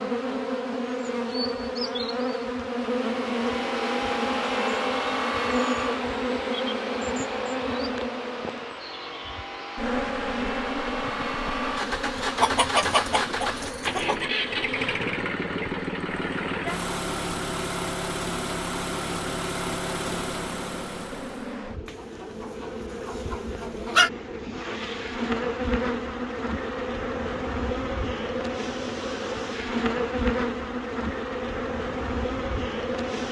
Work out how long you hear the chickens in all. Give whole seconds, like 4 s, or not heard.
4 s.